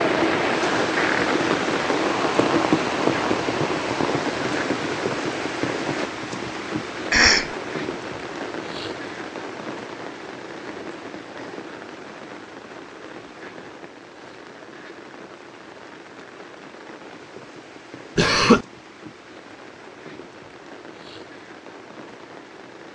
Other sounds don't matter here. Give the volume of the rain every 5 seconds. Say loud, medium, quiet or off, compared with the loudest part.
loud, medium, quiet, quiet, quiet.